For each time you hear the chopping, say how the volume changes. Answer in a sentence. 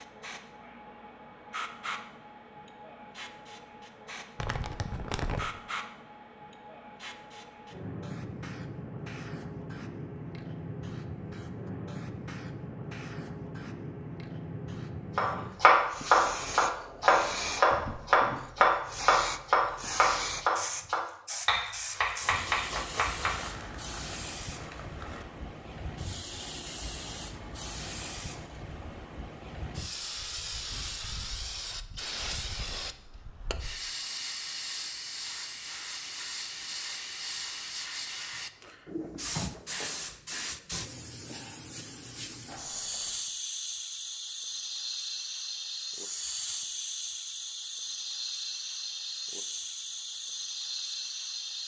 The chopping can be heard from 15.2 to 23.6 s, getting quieter.